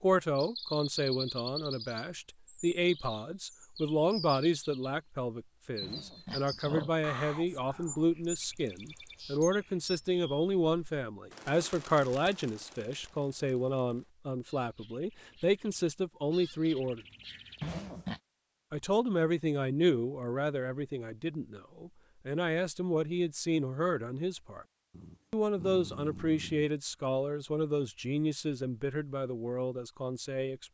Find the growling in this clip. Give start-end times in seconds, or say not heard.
5.8-6.9, 17.6-18.2, 24.9-26.7.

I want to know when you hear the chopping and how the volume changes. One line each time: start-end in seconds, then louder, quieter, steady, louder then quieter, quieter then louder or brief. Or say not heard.
not heard.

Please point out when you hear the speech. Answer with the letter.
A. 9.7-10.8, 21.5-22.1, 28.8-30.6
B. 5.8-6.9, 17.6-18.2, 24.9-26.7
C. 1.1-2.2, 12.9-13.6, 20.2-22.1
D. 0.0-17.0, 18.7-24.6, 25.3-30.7
D.